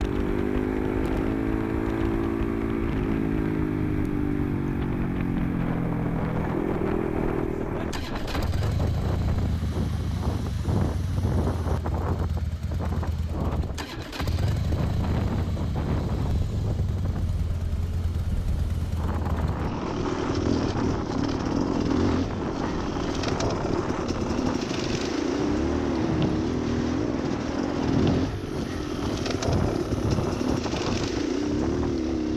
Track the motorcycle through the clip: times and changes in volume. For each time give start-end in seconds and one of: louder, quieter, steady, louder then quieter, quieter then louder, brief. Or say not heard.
0.0-32.3 quieter then louder.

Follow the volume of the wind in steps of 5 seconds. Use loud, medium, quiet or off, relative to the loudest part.
medium, loud, loud, loud, loud, loud, loud.